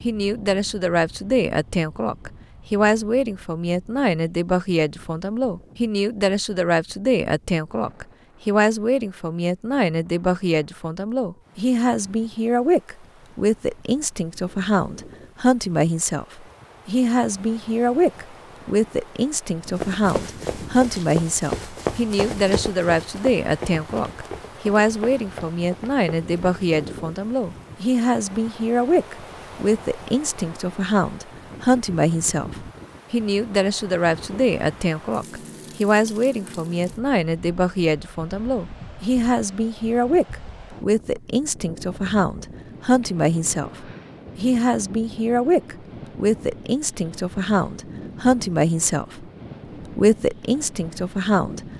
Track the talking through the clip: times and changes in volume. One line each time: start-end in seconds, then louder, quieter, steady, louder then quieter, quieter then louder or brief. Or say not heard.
0.0-49.2 steady
50.0-51.6 brief.